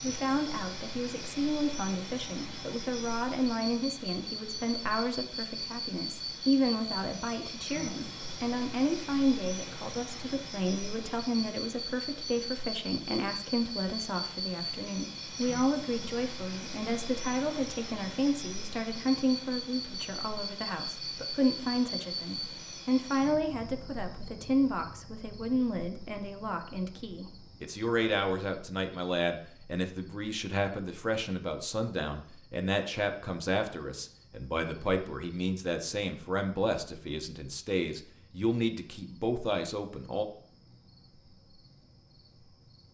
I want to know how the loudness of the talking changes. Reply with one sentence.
The loudness of the talking stays about the same.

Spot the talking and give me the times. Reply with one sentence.
You can hear the talking from 0.0 to 40.2 s.